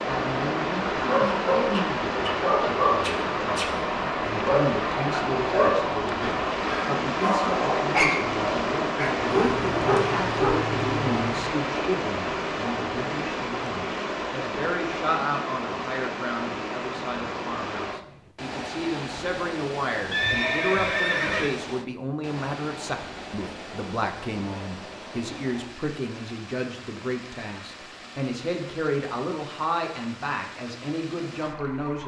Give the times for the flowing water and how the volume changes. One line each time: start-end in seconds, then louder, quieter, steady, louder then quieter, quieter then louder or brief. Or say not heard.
0.0-32.0 quieter.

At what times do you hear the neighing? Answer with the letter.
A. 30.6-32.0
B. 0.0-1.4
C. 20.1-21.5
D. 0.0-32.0
C.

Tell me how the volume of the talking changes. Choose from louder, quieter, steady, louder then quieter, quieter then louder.
steady.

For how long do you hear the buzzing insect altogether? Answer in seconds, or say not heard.
not heard.